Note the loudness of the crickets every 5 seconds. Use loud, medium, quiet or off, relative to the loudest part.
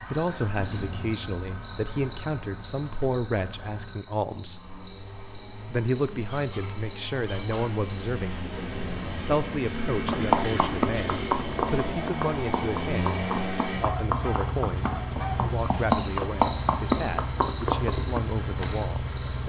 medium, medium, loud, loud.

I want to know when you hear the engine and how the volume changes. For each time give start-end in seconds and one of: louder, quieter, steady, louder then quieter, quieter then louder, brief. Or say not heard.
0.0-19.4 louder.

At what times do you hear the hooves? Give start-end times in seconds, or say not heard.
10.1-18.9.